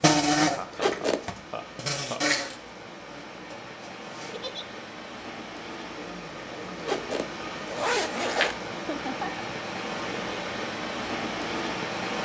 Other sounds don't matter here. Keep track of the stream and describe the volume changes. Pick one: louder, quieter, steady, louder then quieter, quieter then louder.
louder.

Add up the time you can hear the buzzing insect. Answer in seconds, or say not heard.
4 s.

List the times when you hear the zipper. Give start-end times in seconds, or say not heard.
0.7-1.3, 6.8-8.6.